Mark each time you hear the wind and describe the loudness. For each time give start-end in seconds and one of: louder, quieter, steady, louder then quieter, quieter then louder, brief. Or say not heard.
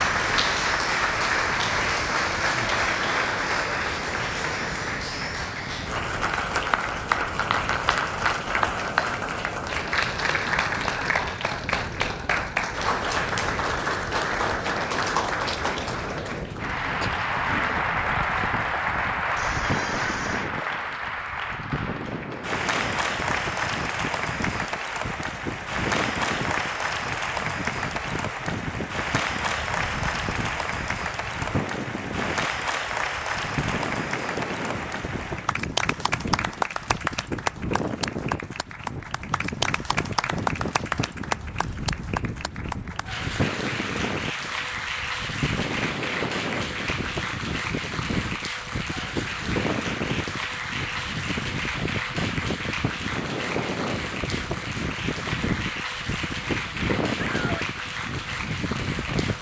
0.0-59.3 louder.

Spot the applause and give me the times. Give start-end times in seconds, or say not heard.
0.0-59.3.